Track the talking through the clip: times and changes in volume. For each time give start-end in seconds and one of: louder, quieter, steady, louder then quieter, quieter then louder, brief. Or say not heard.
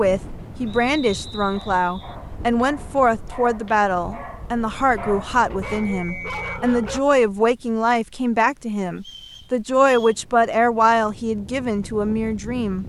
0.0-12.8 steady.